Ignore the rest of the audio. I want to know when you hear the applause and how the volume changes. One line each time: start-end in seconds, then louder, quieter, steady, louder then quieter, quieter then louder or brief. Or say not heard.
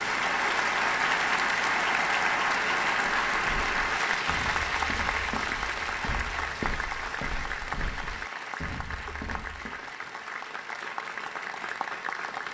0.0-12.4 quieter.